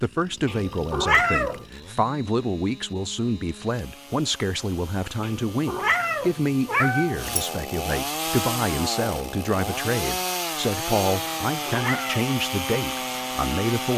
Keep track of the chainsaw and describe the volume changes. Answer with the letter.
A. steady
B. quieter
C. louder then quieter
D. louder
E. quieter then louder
D.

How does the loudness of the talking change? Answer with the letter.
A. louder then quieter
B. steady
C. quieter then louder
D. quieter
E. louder
B.